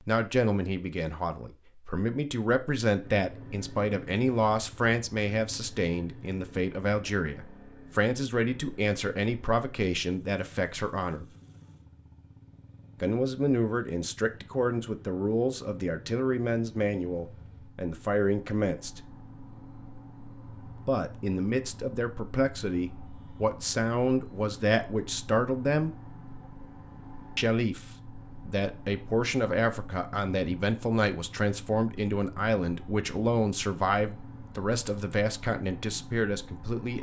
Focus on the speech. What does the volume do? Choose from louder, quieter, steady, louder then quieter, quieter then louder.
steady.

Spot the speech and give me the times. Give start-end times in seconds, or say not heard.
0.1-11.2, 13.0-19.0, 20.9-25.9, 27.4-36.9.